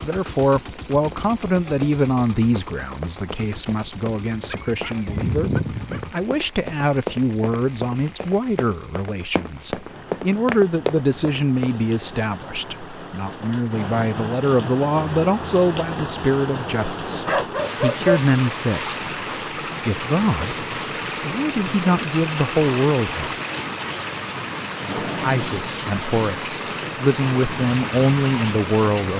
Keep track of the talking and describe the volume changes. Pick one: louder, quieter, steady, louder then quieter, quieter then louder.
steady.